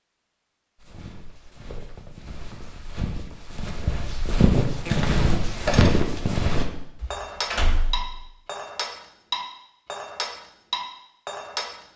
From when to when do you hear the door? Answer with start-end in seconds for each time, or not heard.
7.0-8.2.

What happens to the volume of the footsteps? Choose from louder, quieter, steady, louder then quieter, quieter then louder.
louder.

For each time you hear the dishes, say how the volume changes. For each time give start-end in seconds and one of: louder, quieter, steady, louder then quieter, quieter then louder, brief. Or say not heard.
4.8-11.7 steady.